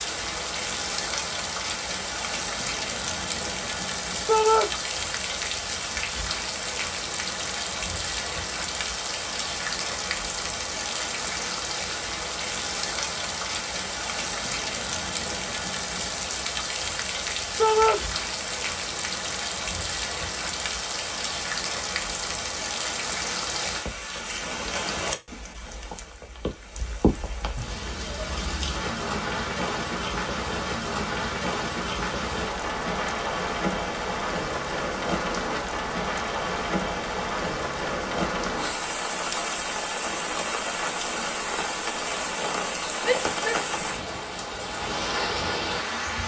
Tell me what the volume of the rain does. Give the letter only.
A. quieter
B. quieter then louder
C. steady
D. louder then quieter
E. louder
C.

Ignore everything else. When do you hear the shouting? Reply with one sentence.
The shouting can be heard from 4.2 to 4.7 s, from 17.6 to 18.0 s and from 43.0 to 43.6 s.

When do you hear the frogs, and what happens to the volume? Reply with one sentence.
The frogs can't be heard in this clip.